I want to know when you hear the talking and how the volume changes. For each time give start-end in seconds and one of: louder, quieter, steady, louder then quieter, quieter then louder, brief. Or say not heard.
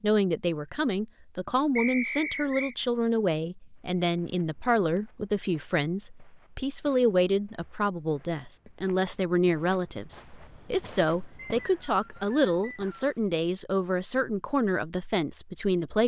0.0-16.0 steady.